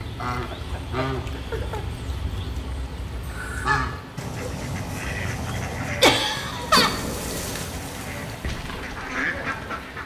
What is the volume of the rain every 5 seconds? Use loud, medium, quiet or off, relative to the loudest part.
medium, loud.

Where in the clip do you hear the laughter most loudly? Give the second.
6 s.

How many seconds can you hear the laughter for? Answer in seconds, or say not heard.
2 s.